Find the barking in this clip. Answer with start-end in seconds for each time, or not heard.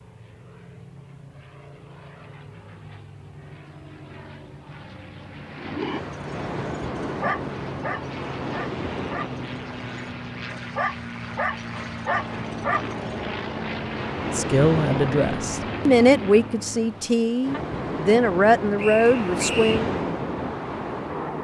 6.1-13.2.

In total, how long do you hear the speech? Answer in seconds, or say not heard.
6 s.